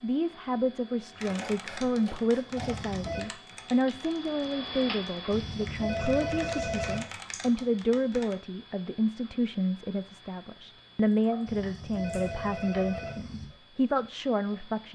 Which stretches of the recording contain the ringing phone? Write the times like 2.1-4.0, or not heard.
2.5-3.2, 5.3-7.0, 11.4-13.4.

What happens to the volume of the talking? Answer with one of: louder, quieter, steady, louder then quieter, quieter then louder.
steady.